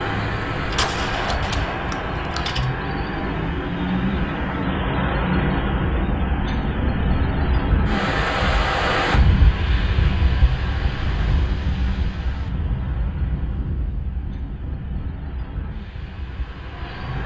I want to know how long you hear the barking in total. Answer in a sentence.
The barking can't be heard in this clip.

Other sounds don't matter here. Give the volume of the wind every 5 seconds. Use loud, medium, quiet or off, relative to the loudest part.
medium, loud, medium, quiet.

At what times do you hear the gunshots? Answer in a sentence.
You can hear the gunshots from 0.7 to 2.7 s.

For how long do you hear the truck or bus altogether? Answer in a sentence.
The truck or bus can be heard for 17 seconds in total.